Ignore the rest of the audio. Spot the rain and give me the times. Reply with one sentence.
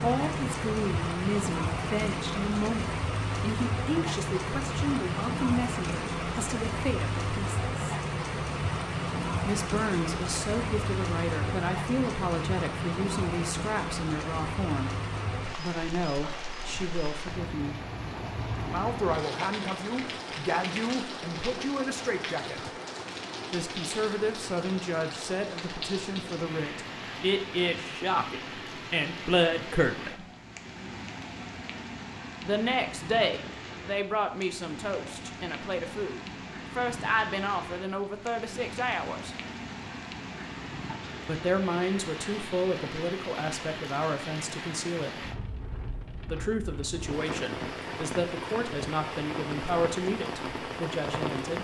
You can hear the rain from 0.0 to 51.5 s.